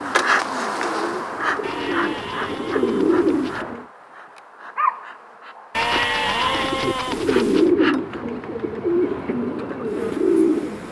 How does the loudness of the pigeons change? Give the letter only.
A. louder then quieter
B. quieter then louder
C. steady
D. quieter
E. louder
E.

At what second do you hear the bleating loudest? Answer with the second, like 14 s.
6 s.